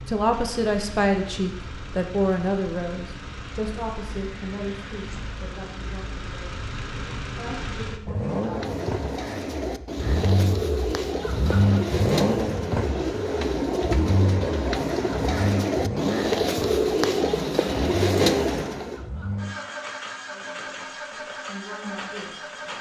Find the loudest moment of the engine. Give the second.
12 s.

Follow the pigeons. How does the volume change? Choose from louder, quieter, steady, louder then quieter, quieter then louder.
louder.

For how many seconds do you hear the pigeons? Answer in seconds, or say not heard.
11 s.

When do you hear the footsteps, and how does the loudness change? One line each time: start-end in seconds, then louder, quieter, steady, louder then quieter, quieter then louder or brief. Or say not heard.
not heard.